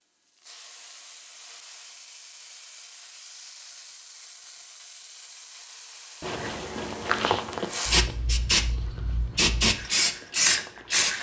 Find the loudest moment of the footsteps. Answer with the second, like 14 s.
7 s.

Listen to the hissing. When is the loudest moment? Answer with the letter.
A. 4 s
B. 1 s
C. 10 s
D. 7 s
C.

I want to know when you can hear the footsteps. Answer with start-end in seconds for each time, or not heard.
6.2-11.1.